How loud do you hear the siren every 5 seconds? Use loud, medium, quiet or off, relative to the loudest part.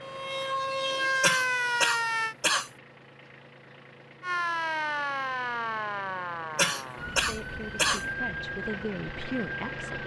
loud, medium.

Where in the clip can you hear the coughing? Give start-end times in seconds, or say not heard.
1.2-2.7, 6.5-8.1.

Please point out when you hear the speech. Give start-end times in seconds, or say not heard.
7.2-10.0.